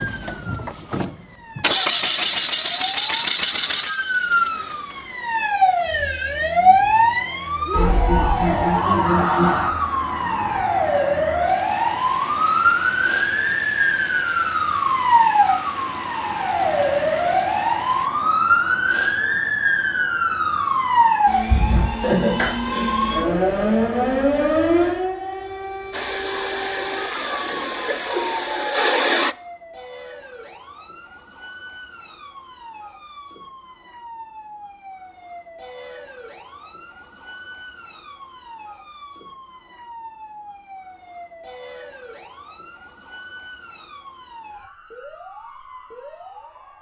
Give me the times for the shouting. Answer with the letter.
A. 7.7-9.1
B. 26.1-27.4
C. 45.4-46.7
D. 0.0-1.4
A.